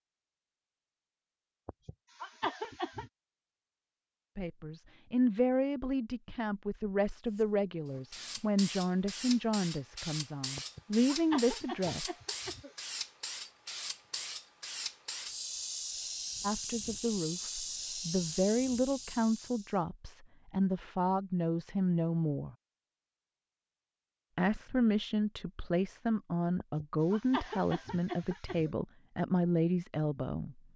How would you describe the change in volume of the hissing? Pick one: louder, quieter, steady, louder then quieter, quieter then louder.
steady.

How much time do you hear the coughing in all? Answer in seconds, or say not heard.
6 s.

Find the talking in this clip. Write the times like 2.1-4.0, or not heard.
4.3-12.2, 16.4-22.6, 24.4-30.6.